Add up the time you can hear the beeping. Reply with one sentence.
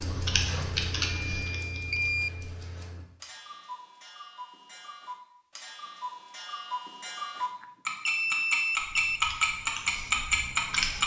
You can hear the beeping for 3 seconds altogether.